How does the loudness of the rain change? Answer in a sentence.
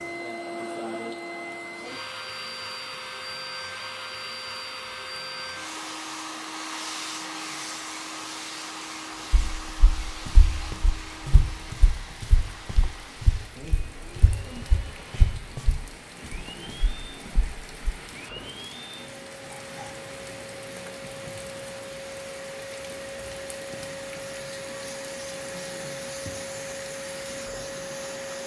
The volume of the rain goes up.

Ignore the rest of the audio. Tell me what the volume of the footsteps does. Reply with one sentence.
The volume of the footsteps goes up, then down.